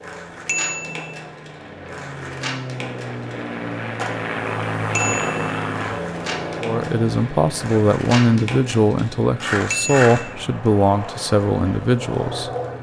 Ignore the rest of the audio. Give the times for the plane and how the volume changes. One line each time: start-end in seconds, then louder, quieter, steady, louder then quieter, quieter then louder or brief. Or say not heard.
0.0-12.7 louder then quieter.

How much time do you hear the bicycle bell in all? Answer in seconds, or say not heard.
2 s.